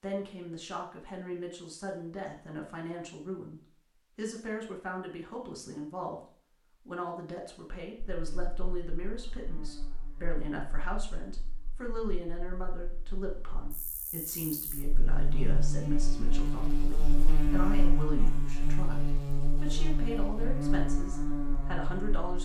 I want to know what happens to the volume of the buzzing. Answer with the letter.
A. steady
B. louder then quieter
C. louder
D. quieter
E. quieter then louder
E.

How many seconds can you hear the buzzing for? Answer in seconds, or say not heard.
14 s.